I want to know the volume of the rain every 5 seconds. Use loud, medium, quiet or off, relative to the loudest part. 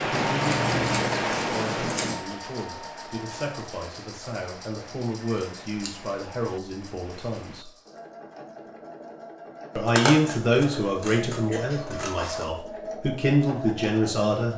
loud, quiet, off.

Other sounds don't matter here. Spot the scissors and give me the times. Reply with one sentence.
The scissors can be heard from 0.1 to 2.1 s, from 5.3 to 6.2 s and from 9.8 to 12.4 s.